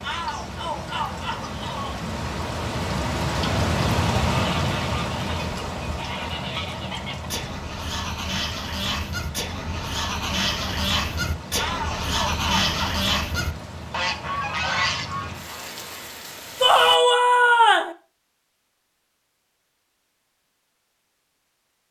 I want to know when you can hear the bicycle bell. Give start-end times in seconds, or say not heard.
not heard.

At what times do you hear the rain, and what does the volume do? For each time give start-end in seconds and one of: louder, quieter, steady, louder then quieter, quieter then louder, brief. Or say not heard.
0.0-17.0 quieter.